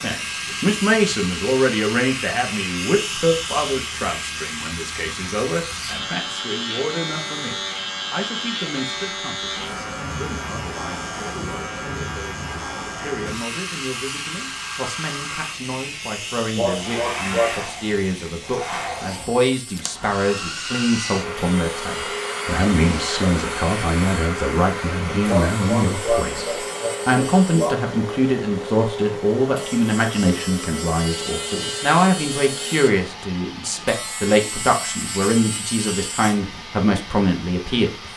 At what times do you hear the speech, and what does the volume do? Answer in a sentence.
You can hear the speech from 0.0 to 38.1 s, getting quieter then louder.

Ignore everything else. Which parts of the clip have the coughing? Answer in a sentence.
The coughing can be heard from 16.6 to 17.6 s and from 25.2 to 27.8 s.